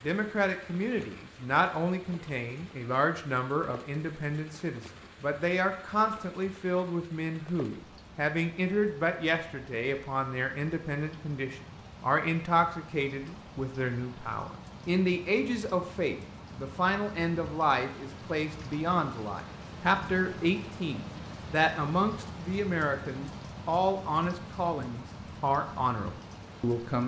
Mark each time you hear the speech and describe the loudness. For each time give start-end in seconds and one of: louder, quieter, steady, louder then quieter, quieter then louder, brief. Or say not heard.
0.0-27.0 steady.